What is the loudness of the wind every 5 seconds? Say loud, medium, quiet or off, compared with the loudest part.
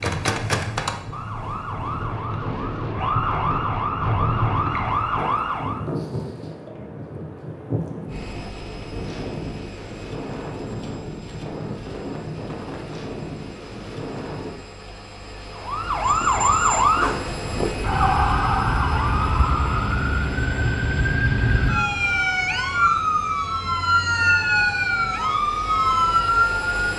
loud, loud, loud, off, off, off.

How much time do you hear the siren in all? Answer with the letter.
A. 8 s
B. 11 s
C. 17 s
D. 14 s
C.